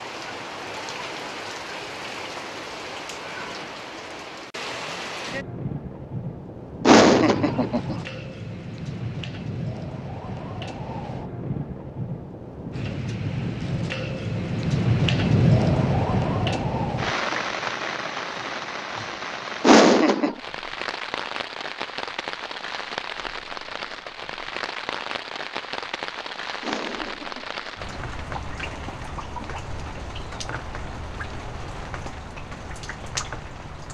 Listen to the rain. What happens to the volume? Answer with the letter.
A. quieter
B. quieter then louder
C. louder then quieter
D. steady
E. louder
C.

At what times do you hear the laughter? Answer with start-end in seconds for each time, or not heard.
6.8-8.0, 19.6-20.4, 26.6-27.4.